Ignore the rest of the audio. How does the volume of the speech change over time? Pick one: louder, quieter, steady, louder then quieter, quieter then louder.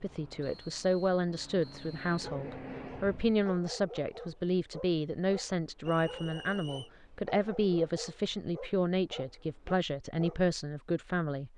steady.